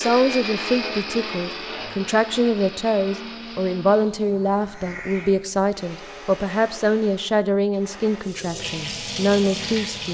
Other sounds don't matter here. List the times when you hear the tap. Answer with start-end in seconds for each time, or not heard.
8.2-10.0.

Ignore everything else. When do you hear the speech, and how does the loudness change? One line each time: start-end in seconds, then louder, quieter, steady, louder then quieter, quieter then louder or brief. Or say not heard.
0.0-10.0 steady.